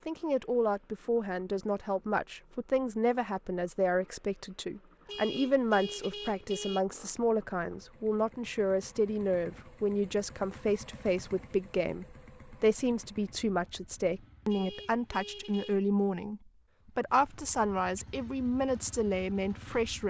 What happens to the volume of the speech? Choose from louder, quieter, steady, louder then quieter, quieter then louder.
steady.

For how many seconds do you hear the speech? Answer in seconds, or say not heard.
20 s.